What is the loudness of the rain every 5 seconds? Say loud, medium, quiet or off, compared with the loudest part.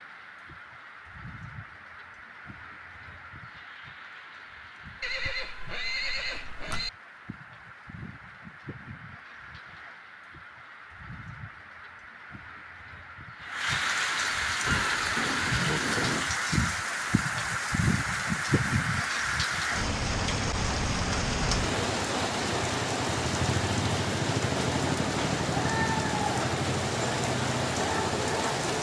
quiet, quiet, medium, loud, loud, loud.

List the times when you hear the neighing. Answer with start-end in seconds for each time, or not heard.
5.0-6.9, 14.7-16.3.